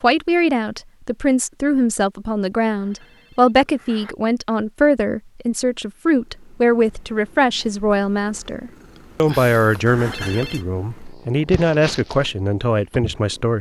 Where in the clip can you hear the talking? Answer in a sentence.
The talking can be heard from 0.0 to 13.5 s.